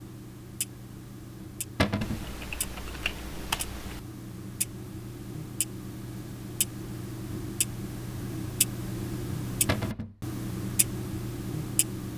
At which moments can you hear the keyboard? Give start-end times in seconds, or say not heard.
2.0-4.0.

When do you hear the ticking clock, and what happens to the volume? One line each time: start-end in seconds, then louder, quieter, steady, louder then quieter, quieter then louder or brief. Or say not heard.
0.0-12.1 louder.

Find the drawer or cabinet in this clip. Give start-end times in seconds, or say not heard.
1.8-2.2, 9.7-10.2.